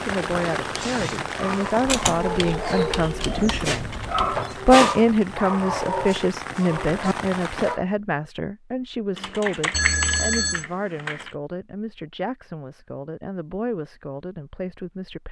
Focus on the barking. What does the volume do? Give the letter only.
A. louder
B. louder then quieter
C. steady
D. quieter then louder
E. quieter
B.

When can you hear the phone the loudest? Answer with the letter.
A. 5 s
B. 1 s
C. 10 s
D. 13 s
C.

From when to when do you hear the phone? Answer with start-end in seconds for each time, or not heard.
3.2-4.6, 9.7-10.7.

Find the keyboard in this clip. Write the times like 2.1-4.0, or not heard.
1.9-4.3, 9.2-11.3.